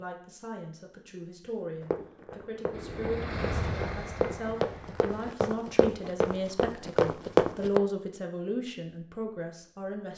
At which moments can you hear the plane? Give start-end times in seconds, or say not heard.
2.7-5.3.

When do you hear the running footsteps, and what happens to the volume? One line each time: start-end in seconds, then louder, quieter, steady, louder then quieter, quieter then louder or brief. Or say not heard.
1.8-7.8 louder.